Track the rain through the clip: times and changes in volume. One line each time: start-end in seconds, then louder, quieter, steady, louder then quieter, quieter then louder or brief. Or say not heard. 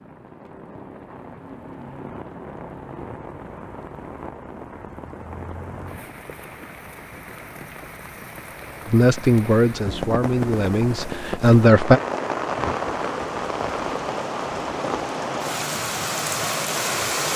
0.0-17.3 louder.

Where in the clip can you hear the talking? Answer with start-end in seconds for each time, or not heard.
8.8-12.0.